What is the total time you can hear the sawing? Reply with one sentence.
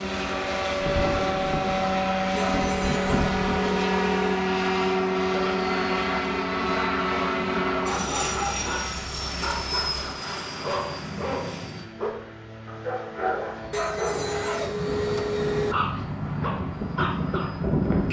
The sawing can be heard for 4 seconds in total.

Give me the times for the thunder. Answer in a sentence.
The thunder can be heard from 0.8 to 3.9 s.